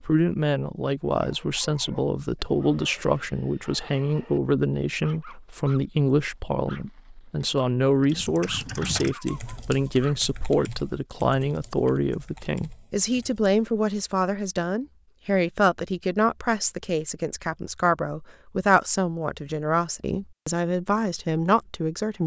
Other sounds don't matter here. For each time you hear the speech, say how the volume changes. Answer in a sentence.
The speech can be heard from 0.0 to 22.2 s, at a steady volume.